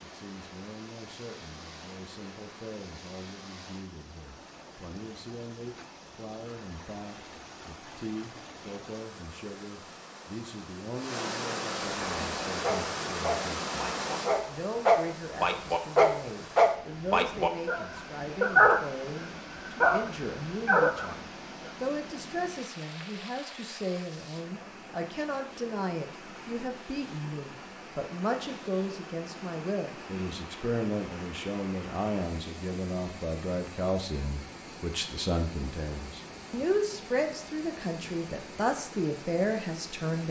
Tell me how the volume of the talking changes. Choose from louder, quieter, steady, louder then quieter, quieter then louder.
louder.